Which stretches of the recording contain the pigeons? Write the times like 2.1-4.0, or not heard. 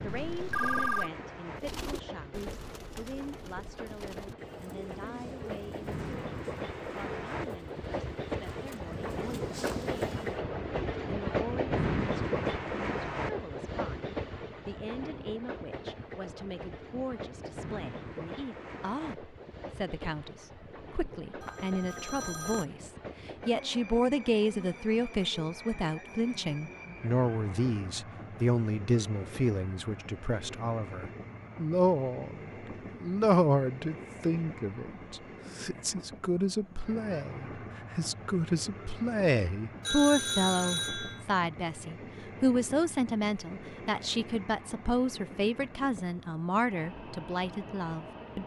1.6-10.4.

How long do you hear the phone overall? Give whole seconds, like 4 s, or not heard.
4 s.